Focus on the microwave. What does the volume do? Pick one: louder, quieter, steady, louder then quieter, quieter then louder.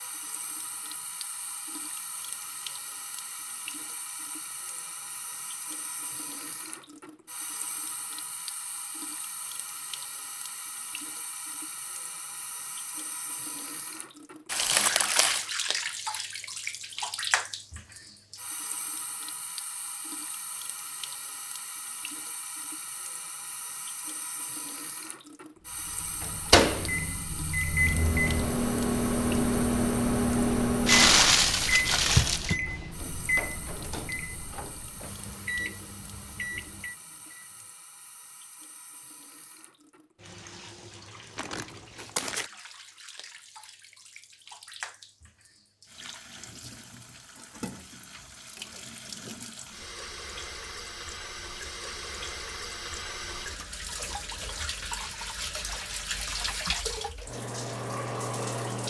quieter.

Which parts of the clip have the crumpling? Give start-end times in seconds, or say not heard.
14.5-15.4, 30.9-32.5, 41.4-42.5.